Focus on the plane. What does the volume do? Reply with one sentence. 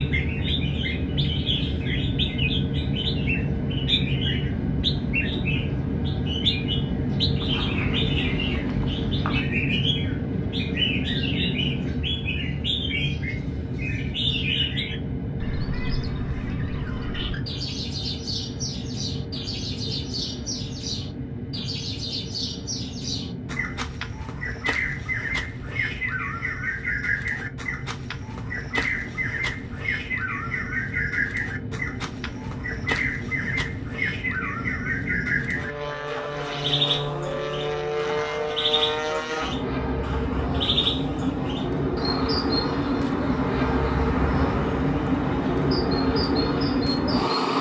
The loudness of the plane goes down, then up.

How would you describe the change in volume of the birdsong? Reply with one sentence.
The volume of the birdsong stays about the same.